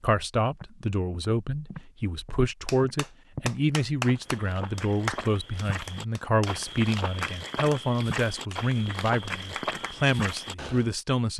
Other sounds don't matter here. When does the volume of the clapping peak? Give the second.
5 s.